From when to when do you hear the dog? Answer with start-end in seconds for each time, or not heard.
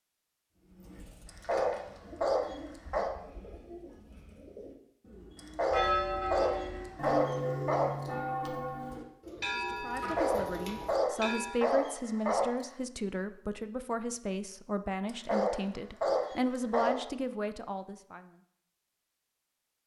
1.2-3.1, 5.3-8.1, 9.9-12.7, 15.1-17.0.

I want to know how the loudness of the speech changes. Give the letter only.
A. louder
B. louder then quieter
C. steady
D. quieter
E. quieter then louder
C.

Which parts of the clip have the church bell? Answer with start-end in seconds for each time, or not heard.
5.7-11.8.